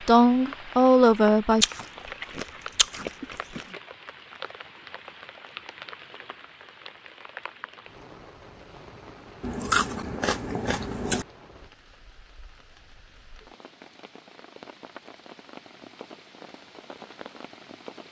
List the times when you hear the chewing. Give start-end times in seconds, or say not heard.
1.6-3.6, 9.4-11.2.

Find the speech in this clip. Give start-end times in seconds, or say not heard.
0.1-1.6.